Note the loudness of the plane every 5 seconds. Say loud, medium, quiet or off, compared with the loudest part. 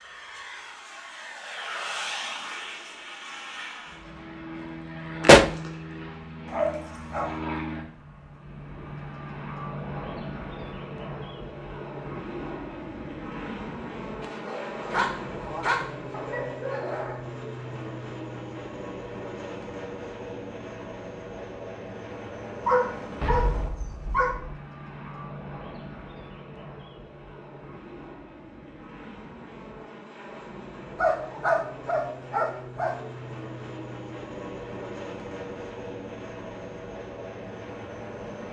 loud, loud, loud, loud, loud, medium, loud, loud.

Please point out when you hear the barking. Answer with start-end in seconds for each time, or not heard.
6.5-7.3, 14.2-17.2, 22.6-24.4, 30.9-32.9.